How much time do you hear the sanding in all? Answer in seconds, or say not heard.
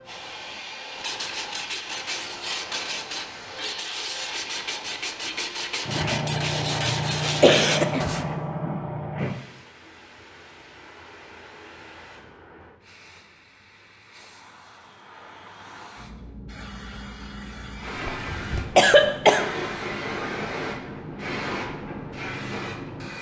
7 s.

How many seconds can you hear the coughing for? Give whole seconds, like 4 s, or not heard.
3 s.